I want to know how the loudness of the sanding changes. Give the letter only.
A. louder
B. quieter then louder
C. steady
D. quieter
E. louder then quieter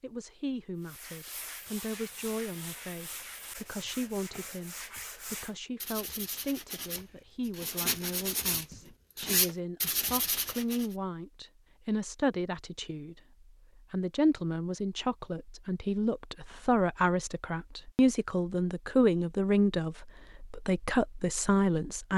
A.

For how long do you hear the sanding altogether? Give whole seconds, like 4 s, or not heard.
10 s.